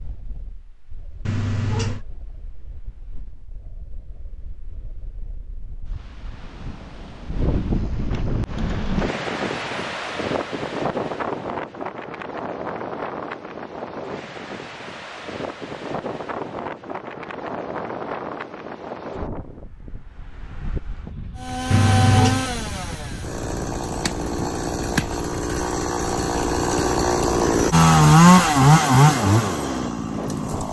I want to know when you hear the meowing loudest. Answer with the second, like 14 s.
22 s.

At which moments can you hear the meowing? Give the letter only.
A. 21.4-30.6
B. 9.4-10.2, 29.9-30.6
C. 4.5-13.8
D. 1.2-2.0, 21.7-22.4
D.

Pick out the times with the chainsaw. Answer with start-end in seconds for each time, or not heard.
21.4-30.6.